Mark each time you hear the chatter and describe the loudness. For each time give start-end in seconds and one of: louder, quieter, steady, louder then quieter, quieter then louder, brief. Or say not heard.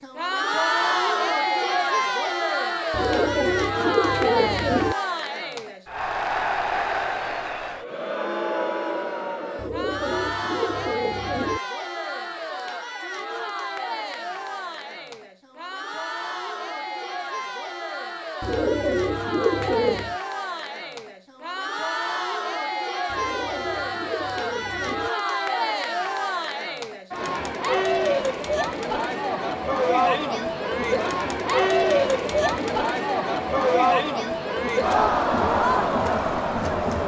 0.0-37.0 quieter then louder.